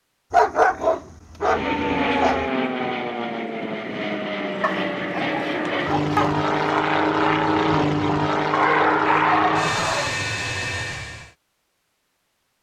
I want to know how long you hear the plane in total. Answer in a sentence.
You can hear the plane for 10 seconds altogether.